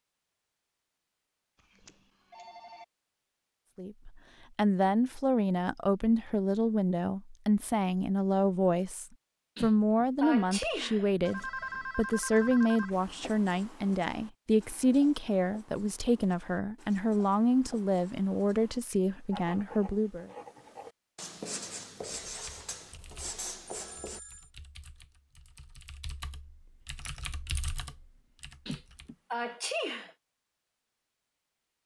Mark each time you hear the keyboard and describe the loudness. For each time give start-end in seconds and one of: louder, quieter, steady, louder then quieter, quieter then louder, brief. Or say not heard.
22.2-29.1 louder.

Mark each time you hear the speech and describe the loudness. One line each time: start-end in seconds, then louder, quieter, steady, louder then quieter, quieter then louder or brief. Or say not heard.
3.8-20.3 steady.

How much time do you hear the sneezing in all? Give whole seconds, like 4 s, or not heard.
4 s.